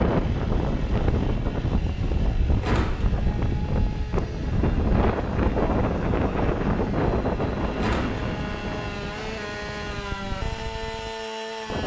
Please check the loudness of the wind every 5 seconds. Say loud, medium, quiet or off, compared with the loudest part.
loud, loud, medium.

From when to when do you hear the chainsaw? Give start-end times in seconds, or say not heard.
0.0-11.8.